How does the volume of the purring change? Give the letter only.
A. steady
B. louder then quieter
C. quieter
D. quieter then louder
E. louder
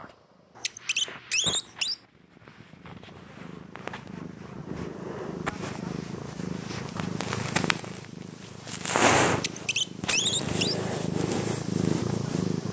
E.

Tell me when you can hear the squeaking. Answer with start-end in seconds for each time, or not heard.
0.6-1.9, 9.3-10.8.